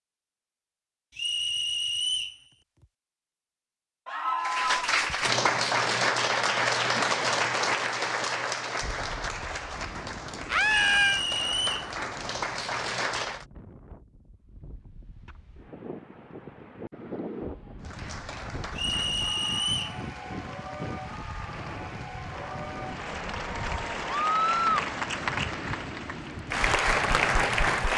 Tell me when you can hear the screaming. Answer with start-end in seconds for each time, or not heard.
4.0-5.0, 10.5-11.2, 24.2-24.9.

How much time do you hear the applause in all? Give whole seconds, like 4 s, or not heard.
19 s.